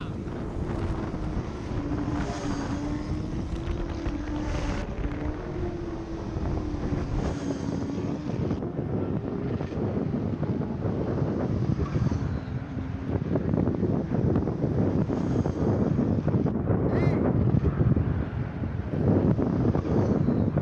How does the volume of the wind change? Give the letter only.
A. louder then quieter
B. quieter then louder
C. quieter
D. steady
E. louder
E.